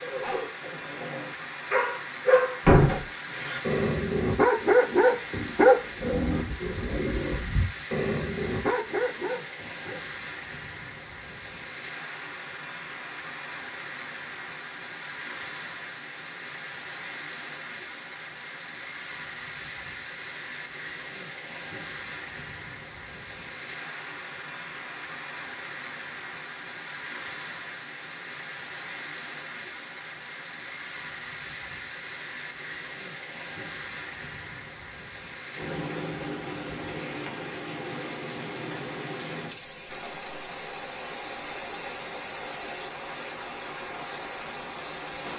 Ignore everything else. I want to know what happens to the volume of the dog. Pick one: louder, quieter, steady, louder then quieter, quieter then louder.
louder then quieter.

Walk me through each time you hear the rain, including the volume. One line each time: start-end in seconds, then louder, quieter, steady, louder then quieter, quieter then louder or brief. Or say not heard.
0.0-45.3 steady.